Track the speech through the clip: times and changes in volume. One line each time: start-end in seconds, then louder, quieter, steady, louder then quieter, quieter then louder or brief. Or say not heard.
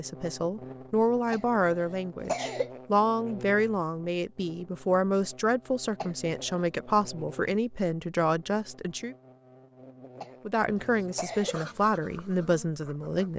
0.0-9.2 steady
10.4-13.3 brief.